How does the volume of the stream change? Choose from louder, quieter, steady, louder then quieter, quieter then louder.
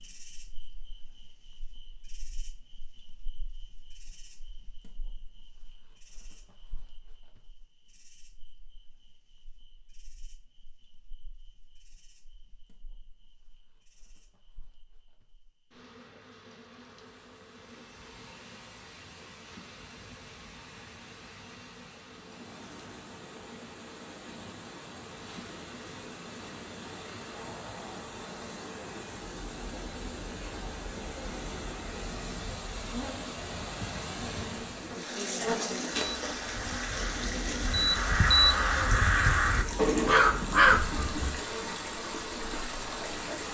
louder.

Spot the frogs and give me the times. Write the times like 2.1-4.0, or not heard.
not heard.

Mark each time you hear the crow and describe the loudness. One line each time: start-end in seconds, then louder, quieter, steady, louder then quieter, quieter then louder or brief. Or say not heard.
36.0-41.4 louder.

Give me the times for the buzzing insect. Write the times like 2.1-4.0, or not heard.
0.0-43.4.